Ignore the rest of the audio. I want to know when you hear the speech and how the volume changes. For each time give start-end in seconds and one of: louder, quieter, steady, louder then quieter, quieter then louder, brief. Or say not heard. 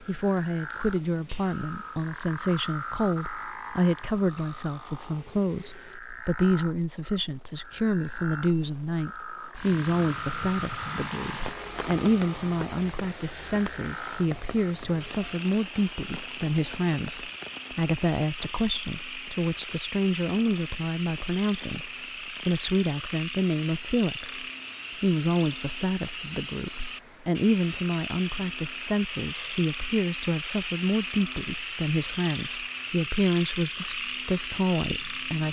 0.0-35.4 steady.